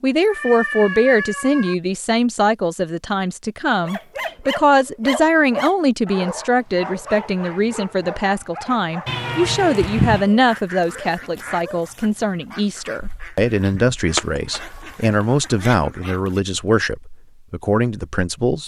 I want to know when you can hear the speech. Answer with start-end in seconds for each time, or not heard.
0.0-18.6.